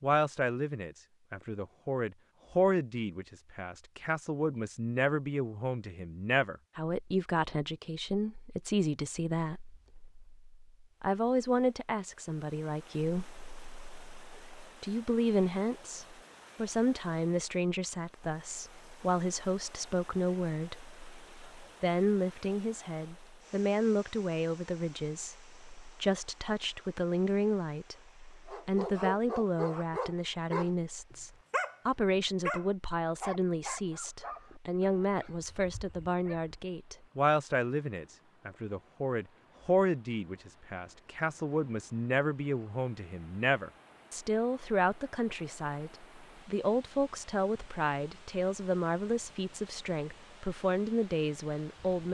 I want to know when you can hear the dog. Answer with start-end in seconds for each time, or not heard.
28.4-36.5.